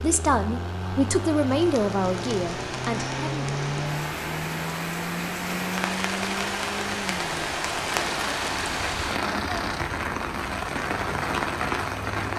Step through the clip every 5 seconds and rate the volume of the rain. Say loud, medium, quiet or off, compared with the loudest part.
medium, loud, loud.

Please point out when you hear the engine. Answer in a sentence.
The engine can be heard from 0.0 to 12.3 s.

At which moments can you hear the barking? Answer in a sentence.
The barking can't be heard in this clip.